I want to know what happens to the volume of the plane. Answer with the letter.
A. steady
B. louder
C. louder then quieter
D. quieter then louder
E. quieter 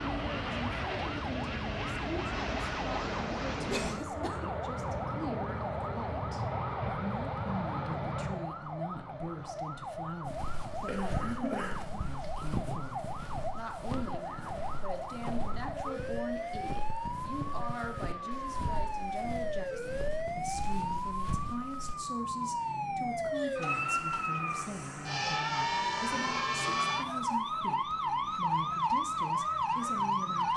E.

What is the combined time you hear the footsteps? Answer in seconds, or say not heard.
12 s.